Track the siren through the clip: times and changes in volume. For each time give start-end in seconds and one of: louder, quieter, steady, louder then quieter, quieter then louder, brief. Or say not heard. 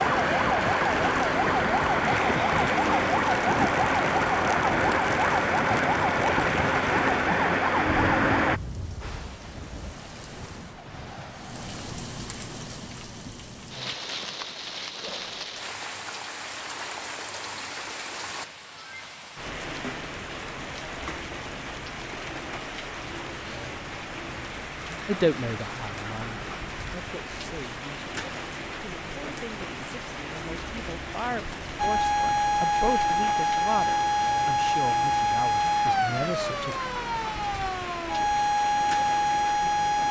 0.0-8.6 steady
31.8-40.0 quieter then louder.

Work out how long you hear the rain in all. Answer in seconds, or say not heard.
40 s.